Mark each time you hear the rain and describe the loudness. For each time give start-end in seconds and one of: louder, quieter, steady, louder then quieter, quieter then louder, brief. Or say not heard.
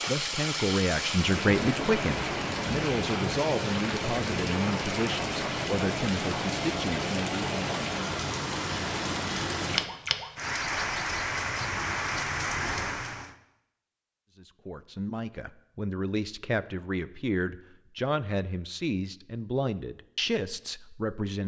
0.0-13.3 steady.